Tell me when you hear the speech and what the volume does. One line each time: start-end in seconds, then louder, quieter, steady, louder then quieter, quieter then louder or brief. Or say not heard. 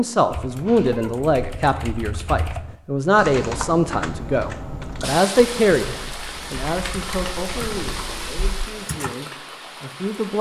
0.0-10.3 quieter.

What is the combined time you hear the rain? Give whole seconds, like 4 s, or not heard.
5 s.